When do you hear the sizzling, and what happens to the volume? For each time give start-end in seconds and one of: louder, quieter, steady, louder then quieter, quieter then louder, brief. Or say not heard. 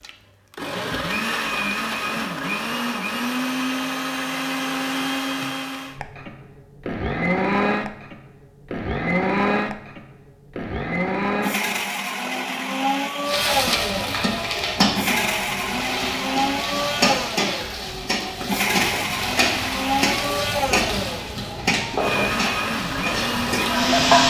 13.2-24.2 steady.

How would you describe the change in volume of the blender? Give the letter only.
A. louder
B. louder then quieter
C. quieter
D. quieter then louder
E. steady
E.